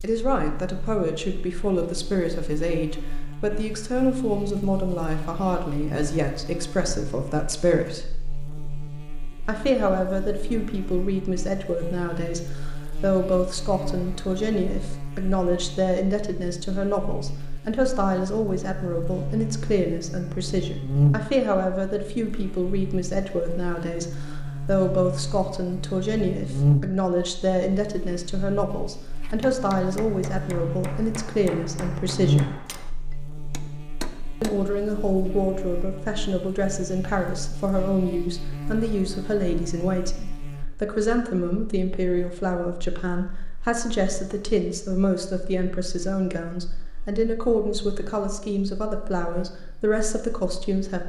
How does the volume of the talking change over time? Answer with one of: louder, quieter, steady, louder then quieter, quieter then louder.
steady.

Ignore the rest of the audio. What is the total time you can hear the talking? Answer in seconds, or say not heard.
48 s.